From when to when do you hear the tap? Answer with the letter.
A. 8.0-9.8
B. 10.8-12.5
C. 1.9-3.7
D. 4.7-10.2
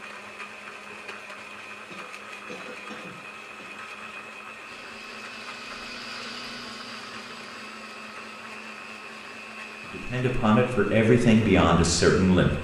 D.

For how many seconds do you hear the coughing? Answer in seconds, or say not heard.
2 s.